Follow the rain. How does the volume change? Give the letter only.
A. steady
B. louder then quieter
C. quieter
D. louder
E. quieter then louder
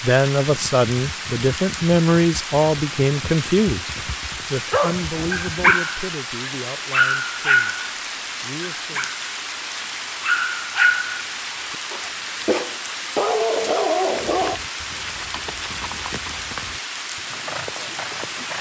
A.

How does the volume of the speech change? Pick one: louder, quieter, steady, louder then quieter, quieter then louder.
quieter.